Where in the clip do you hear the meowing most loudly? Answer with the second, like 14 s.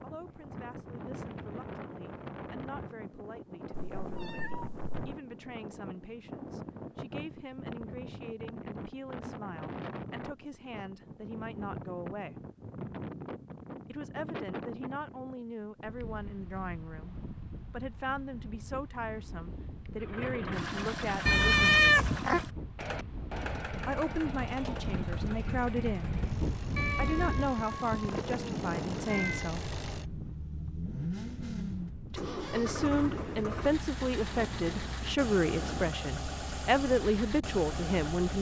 22 s.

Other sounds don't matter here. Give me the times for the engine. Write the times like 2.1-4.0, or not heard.
19.9-38.3.